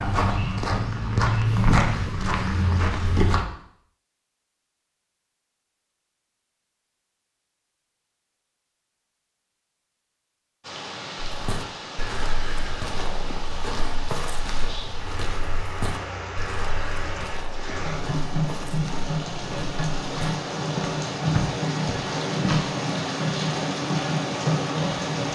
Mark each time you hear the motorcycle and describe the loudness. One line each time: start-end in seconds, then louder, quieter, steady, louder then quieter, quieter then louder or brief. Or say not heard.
not heard.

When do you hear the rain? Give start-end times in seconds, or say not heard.
10.6-25.3.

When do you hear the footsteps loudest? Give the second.
2 s.